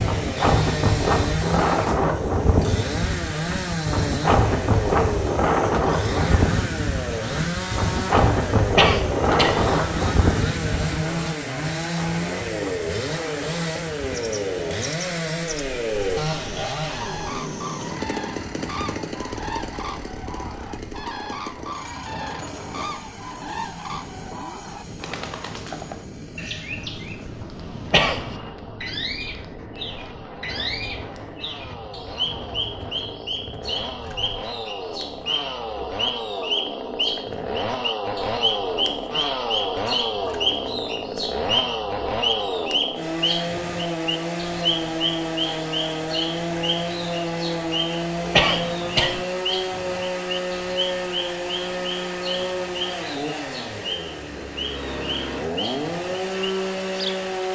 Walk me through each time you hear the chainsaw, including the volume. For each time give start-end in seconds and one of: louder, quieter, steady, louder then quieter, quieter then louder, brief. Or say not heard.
0.0-57.5 quieter then louder.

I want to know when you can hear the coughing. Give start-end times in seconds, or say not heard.
8.8-9.7, 27.9-28.5, 48.3-49.2.